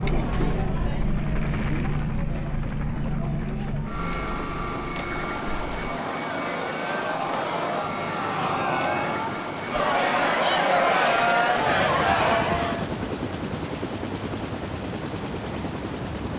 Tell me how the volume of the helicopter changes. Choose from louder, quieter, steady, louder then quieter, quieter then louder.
steady.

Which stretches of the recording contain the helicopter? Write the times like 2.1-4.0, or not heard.
0.0-16.3.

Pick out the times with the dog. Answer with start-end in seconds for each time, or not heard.
not heard.